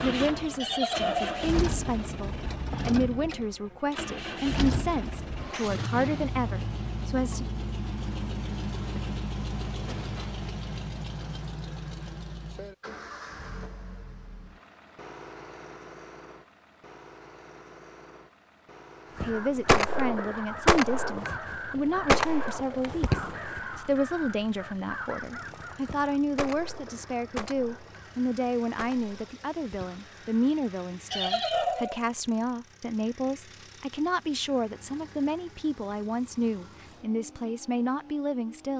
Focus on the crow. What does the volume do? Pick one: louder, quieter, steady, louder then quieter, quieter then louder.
quieter.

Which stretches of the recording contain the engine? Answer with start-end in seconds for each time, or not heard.
0.0-38.7.